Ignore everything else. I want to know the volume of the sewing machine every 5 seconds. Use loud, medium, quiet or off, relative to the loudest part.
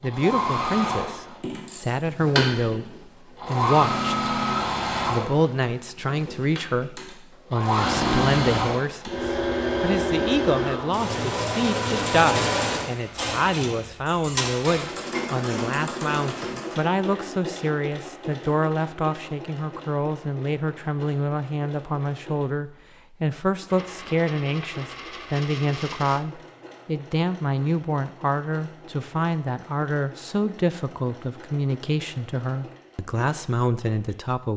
loud, loud, loud, medium, quiet, quiet, quiet.